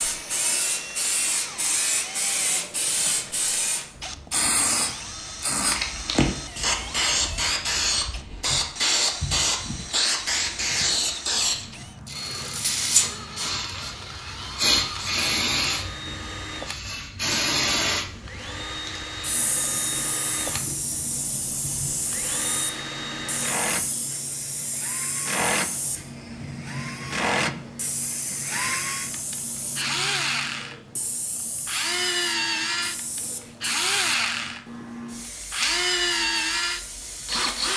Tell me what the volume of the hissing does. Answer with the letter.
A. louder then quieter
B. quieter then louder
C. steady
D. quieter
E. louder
D.